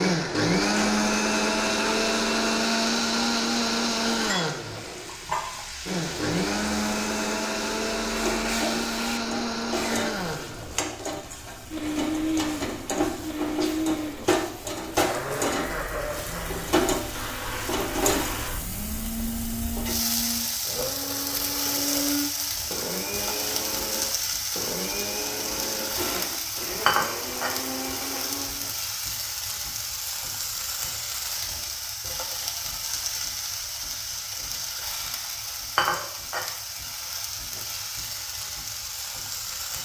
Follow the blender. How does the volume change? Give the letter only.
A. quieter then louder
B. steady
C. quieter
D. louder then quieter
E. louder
C.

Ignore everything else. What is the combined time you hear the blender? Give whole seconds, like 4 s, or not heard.
29 s.